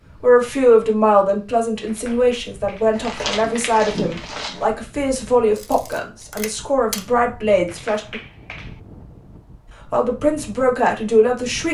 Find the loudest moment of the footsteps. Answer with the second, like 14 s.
3 s.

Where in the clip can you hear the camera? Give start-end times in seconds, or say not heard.
5.5-7.0.